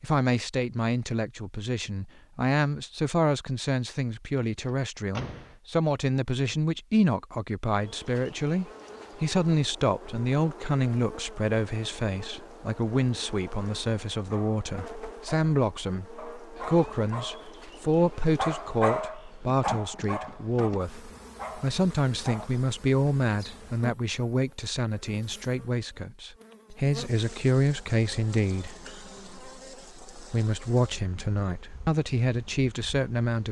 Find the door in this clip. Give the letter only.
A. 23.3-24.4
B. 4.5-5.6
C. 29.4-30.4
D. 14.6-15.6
B.